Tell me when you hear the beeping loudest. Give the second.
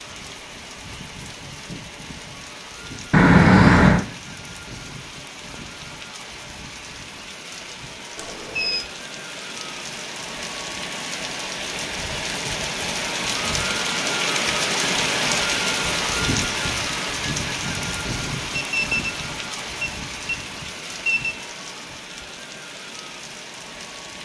4 s.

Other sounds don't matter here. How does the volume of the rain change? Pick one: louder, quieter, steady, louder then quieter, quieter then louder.
louder then quieter.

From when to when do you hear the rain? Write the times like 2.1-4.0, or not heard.
0.0-24.2.